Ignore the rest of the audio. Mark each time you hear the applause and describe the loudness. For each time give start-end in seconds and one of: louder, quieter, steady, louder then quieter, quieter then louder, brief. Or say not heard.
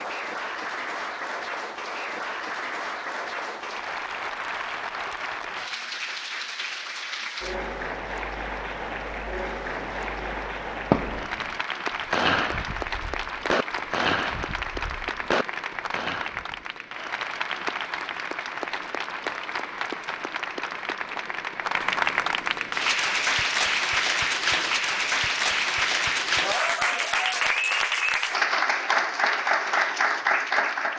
0.0-30.9 louder.